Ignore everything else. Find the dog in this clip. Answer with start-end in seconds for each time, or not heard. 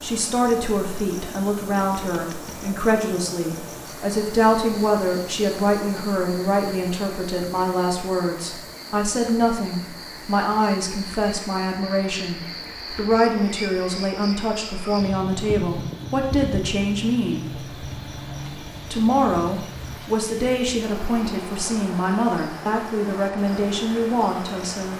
not heard.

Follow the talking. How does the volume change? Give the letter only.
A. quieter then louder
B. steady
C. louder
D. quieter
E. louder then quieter
B.